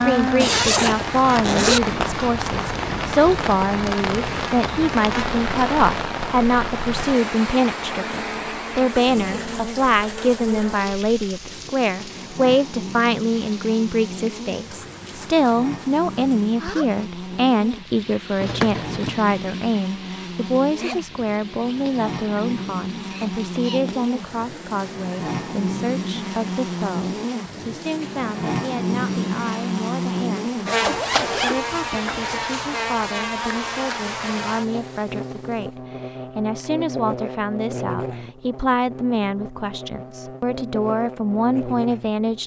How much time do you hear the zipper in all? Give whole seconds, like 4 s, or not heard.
4 s.